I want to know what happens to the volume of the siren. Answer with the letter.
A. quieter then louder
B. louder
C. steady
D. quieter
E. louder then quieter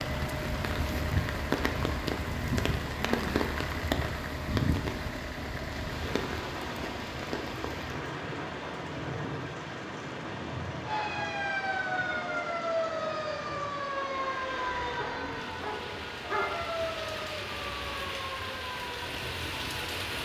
D.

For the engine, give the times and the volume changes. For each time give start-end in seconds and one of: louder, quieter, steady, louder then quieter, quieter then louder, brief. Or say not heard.
0.0-20.2 steady.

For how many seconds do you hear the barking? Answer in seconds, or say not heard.
2 s.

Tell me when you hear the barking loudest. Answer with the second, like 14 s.
16 s.